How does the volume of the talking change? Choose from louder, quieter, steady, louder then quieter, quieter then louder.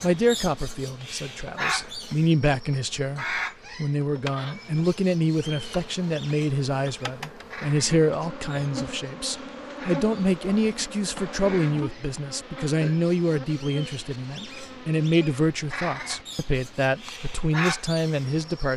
steady.